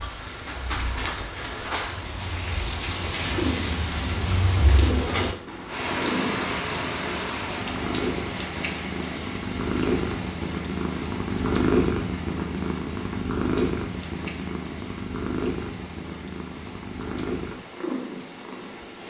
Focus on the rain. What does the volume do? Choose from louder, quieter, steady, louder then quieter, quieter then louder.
quieter.